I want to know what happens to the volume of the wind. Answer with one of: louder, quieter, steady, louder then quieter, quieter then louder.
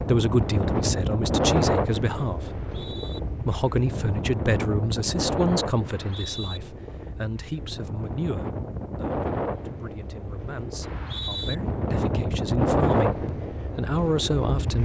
quieter then louder.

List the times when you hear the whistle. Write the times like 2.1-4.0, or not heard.
2.5-3.2, 5.8-6.6, 10.8-11.6.